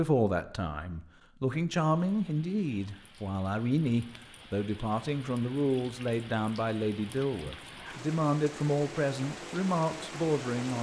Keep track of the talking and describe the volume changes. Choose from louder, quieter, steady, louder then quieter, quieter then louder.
steady.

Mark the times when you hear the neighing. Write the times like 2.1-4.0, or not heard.
not heard.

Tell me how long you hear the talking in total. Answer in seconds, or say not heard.
11 s.